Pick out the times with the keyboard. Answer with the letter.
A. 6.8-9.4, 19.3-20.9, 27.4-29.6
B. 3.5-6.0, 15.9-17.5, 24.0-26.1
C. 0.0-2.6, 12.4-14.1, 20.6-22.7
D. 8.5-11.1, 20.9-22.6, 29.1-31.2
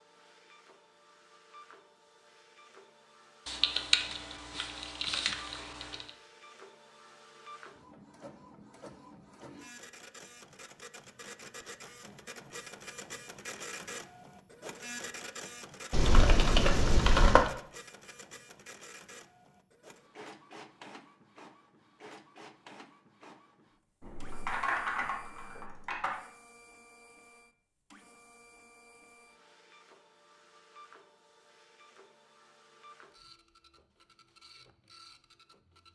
B.